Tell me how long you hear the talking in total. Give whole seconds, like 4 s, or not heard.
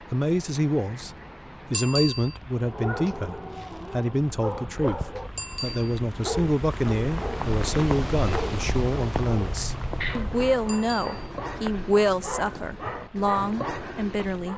14 s.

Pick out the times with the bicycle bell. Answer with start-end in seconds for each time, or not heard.
1.7-2.4, 5.3-6.0, 10.7-11.2.